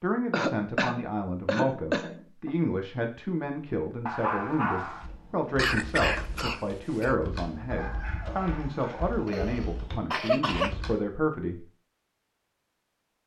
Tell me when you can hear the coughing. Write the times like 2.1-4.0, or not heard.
0.3-2.5, 5.5-7.2, 9.2-10.8.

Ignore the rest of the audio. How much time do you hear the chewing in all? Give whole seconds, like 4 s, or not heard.
not heard.